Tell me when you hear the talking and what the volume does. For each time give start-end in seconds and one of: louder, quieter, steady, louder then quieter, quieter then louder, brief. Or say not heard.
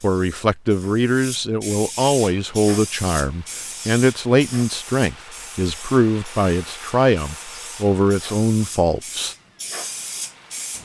0.0-9.3 steady.